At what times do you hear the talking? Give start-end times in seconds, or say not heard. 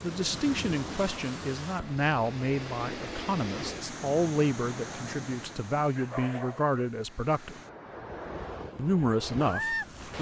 0.0-7.6, 8.8-10.1.